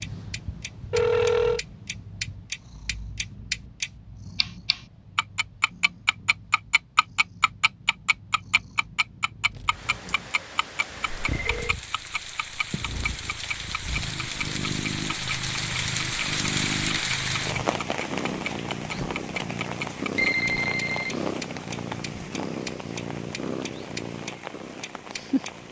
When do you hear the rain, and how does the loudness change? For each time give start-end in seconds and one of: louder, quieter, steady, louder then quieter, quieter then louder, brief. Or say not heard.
9.5-25.6 louder then quieter.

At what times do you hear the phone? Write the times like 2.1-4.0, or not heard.
0.9-1.6, 11.3-11.8, 20.1-21.1.